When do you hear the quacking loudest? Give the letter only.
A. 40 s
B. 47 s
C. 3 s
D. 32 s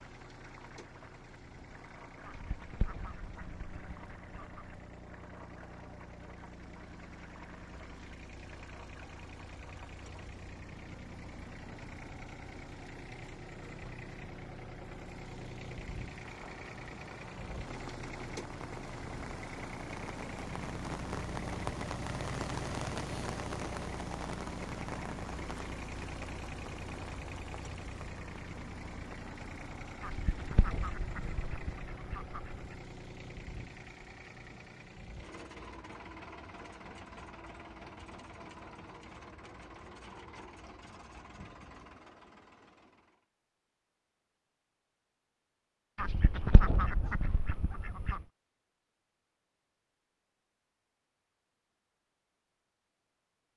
B.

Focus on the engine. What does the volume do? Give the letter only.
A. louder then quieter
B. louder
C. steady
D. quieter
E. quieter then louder
A.